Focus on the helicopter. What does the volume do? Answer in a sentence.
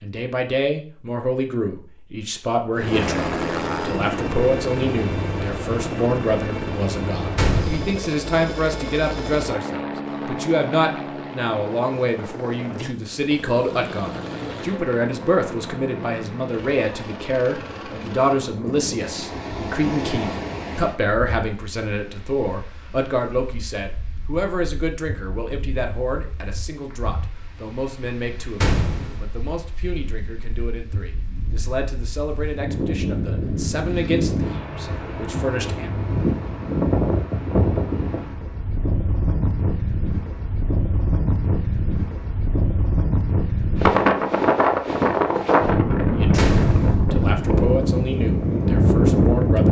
The volume of the helicopter goes down.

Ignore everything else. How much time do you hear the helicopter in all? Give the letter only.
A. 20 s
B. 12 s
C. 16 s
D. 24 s
C.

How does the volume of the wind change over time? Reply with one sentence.
The volume of the wind goes down, then up.